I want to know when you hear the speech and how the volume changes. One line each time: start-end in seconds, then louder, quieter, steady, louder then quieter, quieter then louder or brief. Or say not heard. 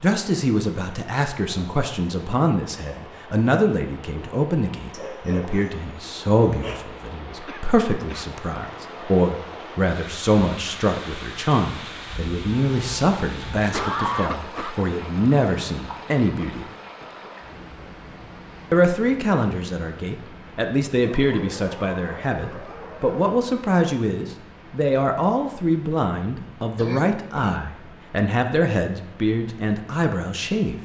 0.0-16.6 steady
18.7-30.8 steady.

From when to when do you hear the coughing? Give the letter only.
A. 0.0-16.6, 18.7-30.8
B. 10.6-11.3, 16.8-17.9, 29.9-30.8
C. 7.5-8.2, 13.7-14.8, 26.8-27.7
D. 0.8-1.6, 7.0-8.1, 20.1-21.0
C.